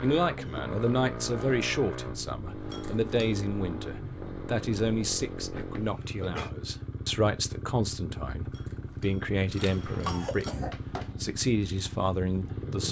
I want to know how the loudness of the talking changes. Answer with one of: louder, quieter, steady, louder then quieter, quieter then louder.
steady.